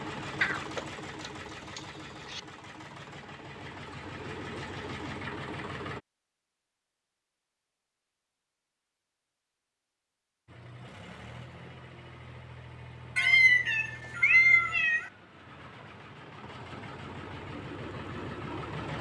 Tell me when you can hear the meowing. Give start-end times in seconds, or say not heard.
0.4-2.4, 13.2-15.1.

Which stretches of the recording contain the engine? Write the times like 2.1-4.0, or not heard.
0.0-6.0, 10.4-18.9.